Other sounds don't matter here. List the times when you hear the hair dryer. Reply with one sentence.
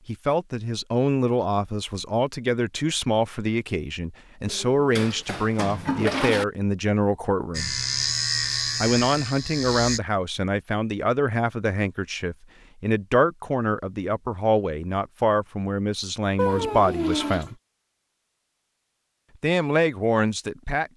You can't hear the hair dryer here.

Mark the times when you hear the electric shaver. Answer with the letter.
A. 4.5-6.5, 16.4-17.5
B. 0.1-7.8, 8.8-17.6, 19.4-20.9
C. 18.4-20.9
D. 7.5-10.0
D.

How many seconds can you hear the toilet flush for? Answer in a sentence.
You can hear the toilet flush for 3 seconds altogether.